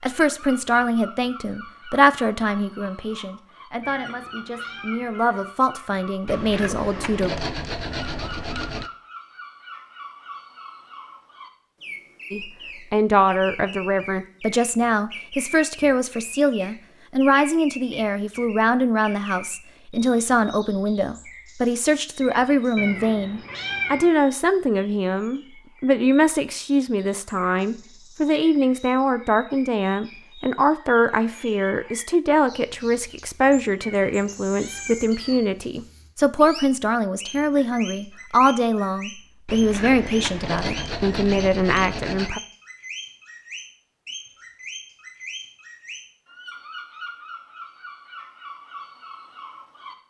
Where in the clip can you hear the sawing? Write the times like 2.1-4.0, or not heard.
6.2-8.9, 39.5-42.3.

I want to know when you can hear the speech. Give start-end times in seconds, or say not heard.
0.0-7.3, 12.3-42.4.